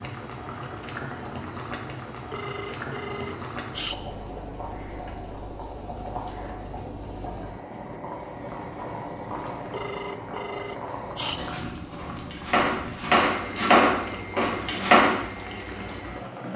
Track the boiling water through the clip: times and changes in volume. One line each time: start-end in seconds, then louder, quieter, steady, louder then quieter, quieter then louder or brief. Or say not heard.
0.0-16.5 steady.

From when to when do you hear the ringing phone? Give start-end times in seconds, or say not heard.
2.3-4.0, 9.7-11.4.